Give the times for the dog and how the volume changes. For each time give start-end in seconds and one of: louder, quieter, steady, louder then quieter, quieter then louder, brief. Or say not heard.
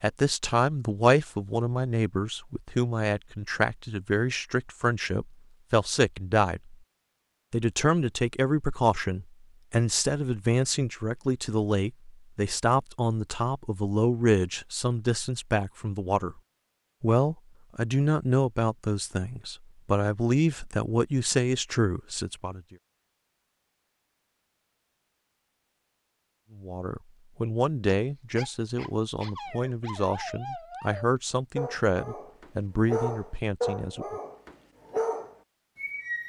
27.9-36.2 louder.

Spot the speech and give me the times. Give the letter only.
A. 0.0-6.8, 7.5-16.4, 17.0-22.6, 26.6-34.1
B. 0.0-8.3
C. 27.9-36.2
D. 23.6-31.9
A.